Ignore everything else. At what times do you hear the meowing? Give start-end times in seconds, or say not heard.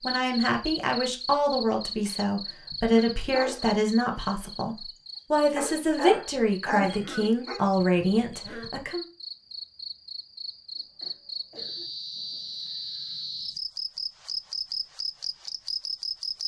not heard.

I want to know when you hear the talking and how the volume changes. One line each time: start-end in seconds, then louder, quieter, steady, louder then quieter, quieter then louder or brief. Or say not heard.
0.0-9.1 steady.